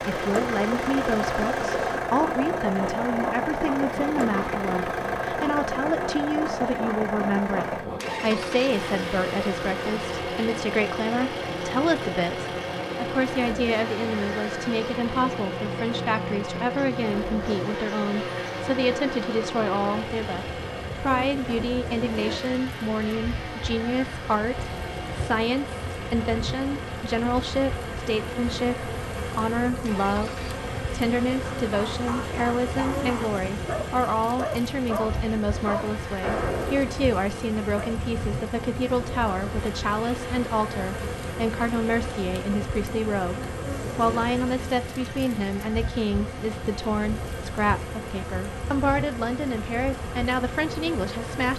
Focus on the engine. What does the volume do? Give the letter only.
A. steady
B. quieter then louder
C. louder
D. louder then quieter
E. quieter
E.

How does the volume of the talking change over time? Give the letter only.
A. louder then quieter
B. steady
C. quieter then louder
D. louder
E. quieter
B.